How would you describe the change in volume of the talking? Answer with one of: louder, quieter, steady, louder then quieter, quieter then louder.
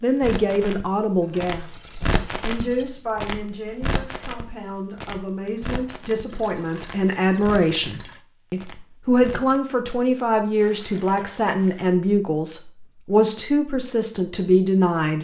quieter then louder.